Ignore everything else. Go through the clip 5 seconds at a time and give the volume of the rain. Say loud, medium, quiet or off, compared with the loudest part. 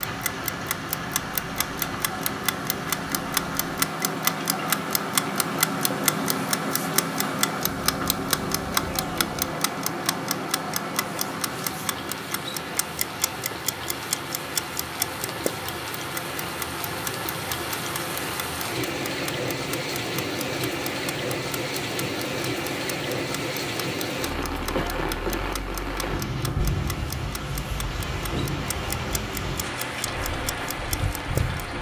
medium, medium, medium, loud, loud, loud, loud.